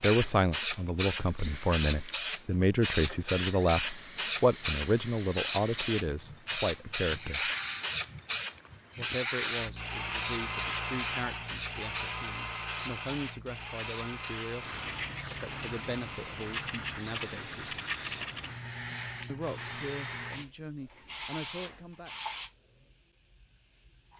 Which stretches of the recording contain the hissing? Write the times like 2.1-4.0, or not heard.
0.0-24.1.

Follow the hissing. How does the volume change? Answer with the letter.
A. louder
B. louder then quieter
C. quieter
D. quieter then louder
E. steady
C.